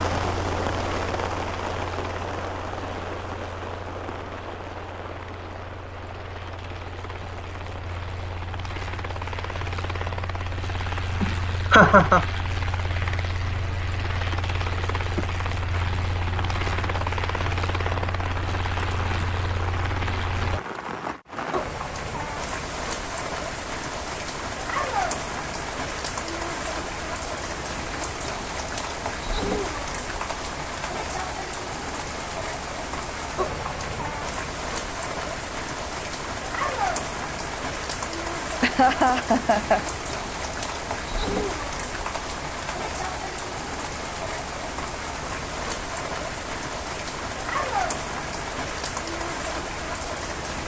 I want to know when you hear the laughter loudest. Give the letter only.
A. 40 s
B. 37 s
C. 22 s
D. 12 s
D.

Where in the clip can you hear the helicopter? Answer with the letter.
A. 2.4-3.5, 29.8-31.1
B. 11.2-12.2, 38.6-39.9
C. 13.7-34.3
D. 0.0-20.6
D.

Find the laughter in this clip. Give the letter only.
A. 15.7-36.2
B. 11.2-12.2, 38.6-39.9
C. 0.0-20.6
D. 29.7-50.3
B.